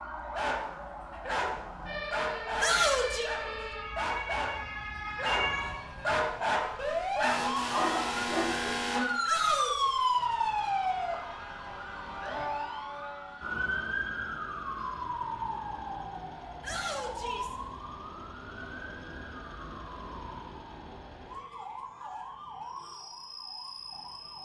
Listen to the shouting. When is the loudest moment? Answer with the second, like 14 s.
3 s.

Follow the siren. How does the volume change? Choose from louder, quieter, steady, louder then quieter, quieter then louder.
louder then quieter.